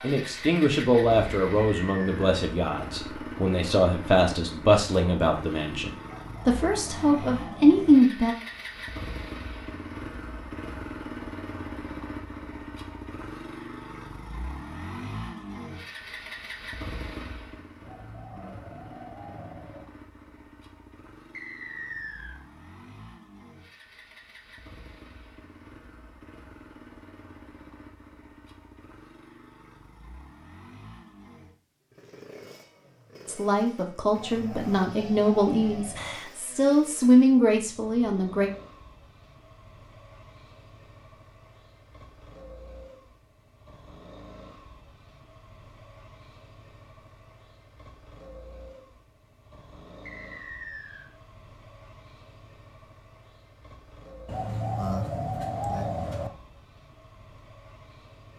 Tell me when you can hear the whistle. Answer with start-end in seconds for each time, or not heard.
1.6-2.2, 21.3-22.4, 50.0-51.0.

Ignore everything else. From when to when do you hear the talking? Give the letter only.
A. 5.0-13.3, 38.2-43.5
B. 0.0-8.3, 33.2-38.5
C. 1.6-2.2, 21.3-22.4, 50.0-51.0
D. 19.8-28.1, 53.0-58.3
B.